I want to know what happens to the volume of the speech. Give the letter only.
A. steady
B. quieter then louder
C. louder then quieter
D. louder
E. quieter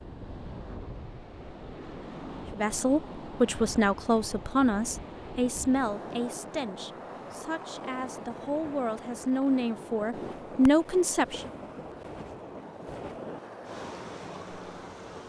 B.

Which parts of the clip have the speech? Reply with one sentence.
You can hear the speech from 2.5 to 11.5 s.